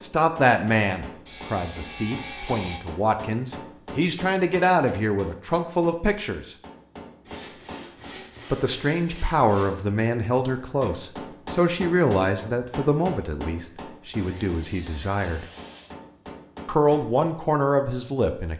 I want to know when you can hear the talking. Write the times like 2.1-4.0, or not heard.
0.0-6.5, 8.5-15.4, 16.6-18.5.